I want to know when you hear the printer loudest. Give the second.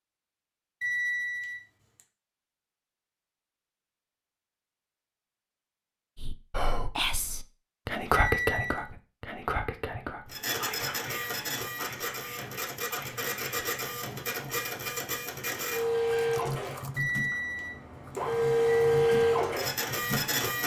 19 s.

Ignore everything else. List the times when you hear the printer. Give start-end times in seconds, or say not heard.
10.3-20.6.